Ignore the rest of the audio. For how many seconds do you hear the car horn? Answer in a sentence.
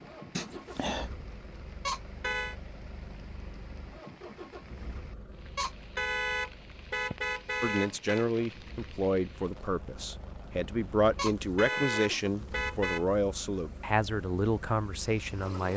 You can hear the car horn for 5 seconds altogether.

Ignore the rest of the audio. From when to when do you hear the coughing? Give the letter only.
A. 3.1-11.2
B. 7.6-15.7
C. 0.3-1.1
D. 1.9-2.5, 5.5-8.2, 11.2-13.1
C.